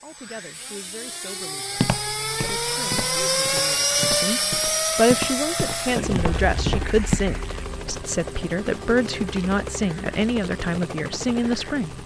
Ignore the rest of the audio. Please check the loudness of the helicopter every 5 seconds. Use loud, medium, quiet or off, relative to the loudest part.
loud, medium, medium.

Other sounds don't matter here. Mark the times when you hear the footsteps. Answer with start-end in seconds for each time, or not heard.
1.8-7.2.